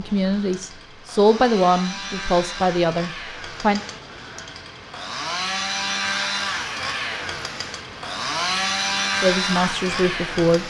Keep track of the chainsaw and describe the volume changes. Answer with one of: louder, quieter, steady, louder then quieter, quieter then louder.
louder.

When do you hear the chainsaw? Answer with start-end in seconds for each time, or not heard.
0.0-10.6.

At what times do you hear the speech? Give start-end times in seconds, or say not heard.
0.0-3.8, 9.2-10.6.